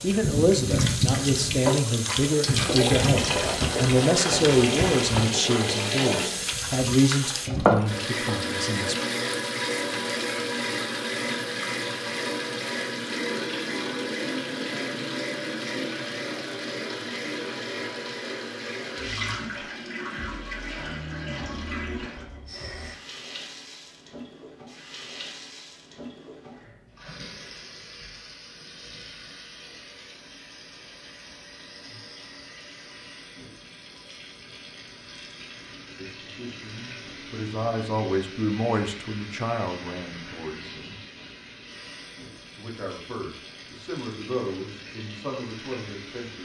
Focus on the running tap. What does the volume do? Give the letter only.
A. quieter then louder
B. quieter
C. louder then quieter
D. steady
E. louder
B.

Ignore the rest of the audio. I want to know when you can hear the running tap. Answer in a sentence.
You can hear the running tap from 0.0 to 46.3 s.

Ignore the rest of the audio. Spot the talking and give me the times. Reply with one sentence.
The talking can be heard from 0.0 to 8.9 s, from 36.0 to 41.0 s and from 42.5 to 46.3 s.